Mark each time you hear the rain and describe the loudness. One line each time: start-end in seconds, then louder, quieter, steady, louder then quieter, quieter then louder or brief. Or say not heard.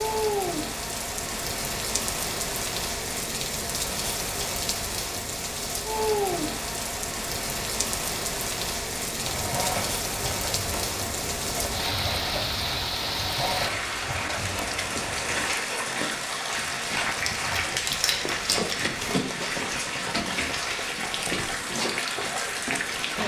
0.0-23.2 steady.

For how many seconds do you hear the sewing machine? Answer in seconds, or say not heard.
6 s.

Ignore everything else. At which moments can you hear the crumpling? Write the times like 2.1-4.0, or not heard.
17.1-19.1.